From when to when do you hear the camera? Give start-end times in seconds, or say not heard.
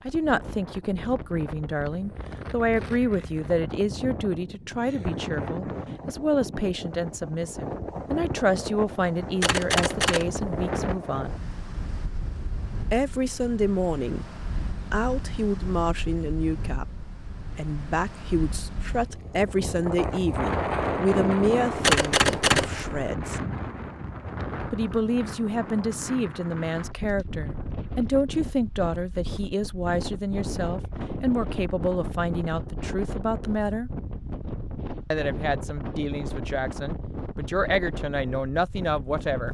9.4-10.7, 21.8-23.1.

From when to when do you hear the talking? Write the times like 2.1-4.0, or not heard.
0.1-11.3, 12.9-14.2, 14.9-23.4, 24.7-33.9, 35.1-39.4.